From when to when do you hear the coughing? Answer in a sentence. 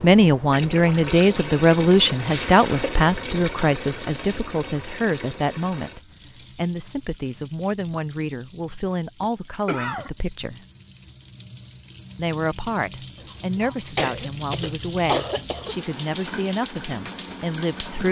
The coughing can be heard from 2.2 to 2.9 s, from 9.2 to 10.1 s and from 13.2 to 15.8 s.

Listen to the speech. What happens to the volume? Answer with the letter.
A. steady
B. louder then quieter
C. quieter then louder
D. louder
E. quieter
E.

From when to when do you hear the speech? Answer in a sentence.
The speech can be heard from 0.0 to 10.6 s and from 12.2 to 18.0 s.